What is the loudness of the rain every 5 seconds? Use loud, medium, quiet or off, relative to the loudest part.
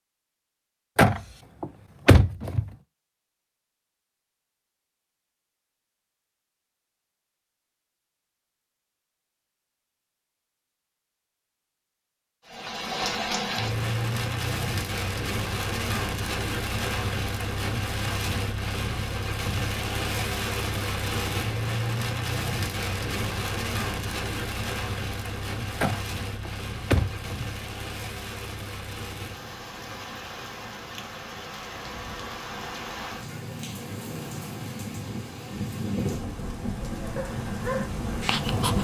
off, off, loud, loud, loud, medium, medium, loud.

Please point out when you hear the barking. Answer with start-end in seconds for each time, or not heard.
37.0-38.7.